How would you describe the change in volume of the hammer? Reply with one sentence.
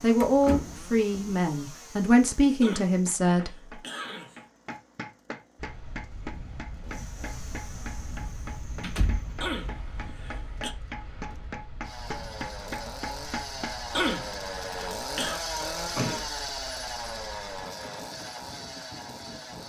The volume of the hammer goes up.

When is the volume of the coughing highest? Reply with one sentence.
The loudest moment of the coughing is at 14 seconds.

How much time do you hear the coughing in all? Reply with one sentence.
You can hear the coughing for 5 seconds altogether.